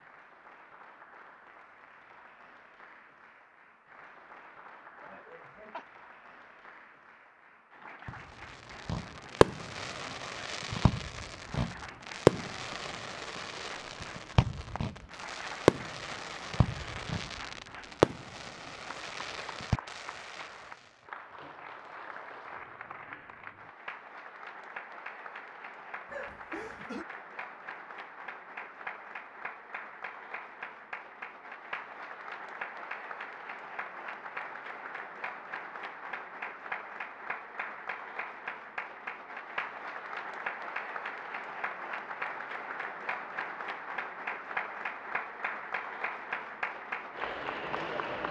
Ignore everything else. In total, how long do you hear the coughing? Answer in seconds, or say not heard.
2 s.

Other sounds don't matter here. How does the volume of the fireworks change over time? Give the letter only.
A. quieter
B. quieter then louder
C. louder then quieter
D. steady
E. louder
B.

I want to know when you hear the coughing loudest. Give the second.
27 s.